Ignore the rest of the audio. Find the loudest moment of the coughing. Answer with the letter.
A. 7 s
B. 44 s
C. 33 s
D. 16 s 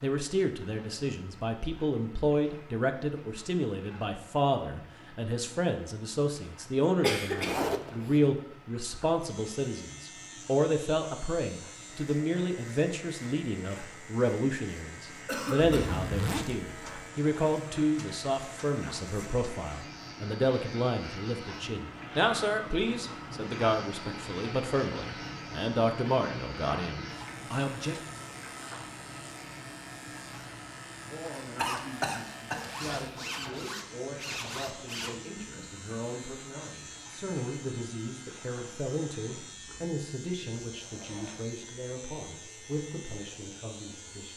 A.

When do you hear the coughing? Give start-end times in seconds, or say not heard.
7.0-7.7, 15.2-16.1, 31.6-32.6.